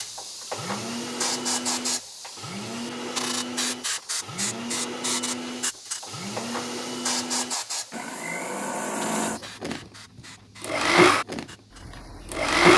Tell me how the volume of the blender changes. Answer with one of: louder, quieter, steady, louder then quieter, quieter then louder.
louder.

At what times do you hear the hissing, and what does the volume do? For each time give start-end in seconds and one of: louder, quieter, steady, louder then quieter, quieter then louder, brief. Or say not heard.
0.0-12.5 quieter.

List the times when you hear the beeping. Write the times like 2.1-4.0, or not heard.
not heard.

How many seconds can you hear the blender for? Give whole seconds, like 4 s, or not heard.
12 s.